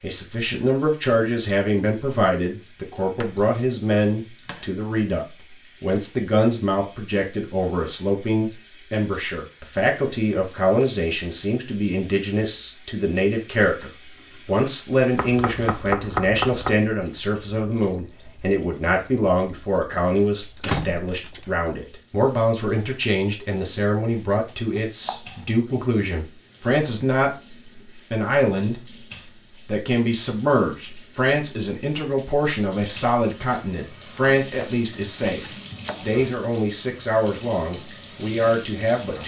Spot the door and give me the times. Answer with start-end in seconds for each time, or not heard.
19.9-21.4.